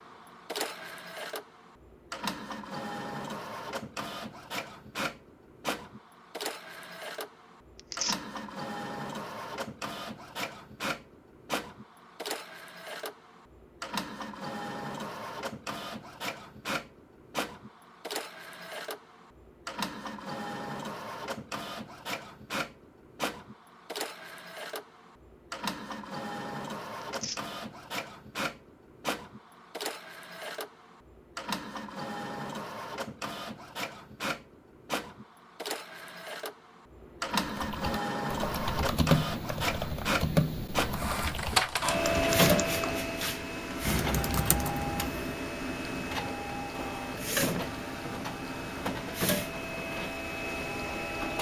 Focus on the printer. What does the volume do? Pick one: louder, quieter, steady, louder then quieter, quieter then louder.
louder.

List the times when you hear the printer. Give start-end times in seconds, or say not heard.
0.0-51.3.